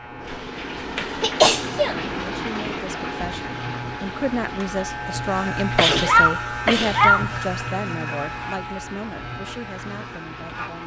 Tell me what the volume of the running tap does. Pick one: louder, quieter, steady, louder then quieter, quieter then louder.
quieter.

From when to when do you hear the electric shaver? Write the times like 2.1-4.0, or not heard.
0.0-10.8.